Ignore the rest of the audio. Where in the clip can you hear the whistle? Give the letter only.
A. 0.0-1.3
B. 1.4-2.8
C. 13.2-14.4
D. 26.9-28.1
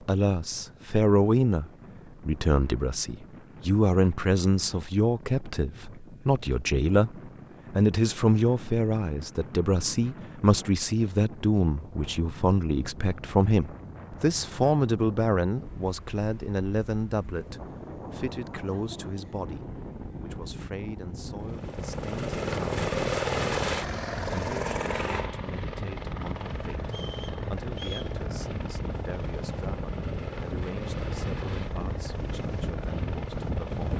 D.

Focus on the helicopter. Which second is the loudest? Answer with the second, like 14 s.
23 s.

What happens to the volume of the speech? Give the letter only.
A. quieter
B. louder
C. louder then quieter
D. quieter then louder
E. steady
A.